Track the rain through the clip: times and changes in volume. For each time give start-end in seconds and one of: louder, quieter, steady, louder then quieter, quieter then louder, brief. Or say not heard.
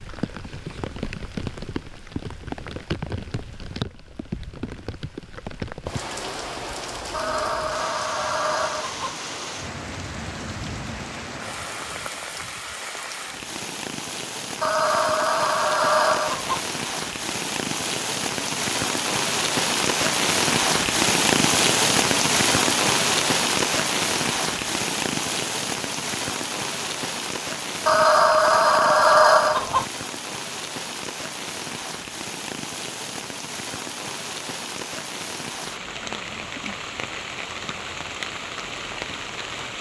0.0-39.7 louder then quieter.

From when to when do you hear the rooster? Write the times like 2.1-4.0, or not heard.
7.1-9.2, 14.6-16.6, 27.9-29.9.